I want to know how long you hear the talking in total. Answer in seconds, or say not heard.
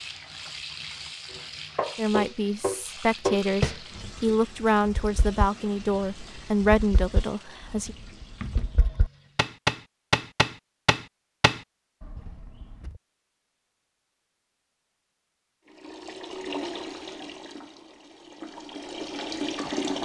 6 s.